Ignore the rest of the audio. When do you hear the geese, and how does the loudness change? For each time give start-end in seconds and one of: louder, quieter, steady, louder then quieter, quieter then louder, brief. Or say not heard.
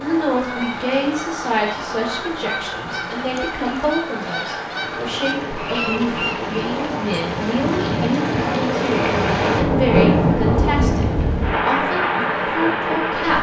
0.0-7.2 steady.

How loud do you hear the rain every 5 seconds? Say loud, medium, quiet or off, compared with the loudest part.
quiet, loud, loud.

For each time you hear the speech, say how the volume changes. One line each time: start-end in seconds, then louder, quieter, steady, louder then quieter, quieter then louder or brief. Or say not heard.
0.0-13.3 steady.